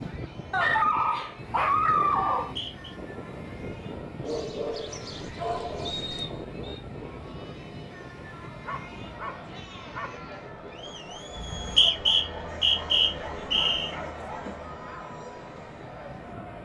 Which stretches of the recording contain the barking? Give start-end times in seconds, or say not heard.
0.5-2.5, 4.2-6.3, 8.6-10.2, 12.7-14.6.